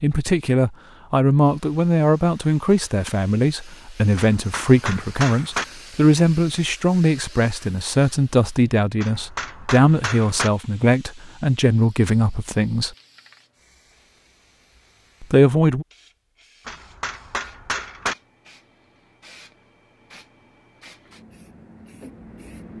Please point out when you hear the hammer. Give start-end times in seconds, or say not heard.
4.2-5.7, 9.0-10.5, 16.6-18.1.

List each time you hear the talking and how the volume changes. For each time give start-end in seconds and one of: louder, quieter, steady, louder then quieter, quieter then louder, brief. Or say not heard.
0.0-12.9 steady
15.2-15.8 brief.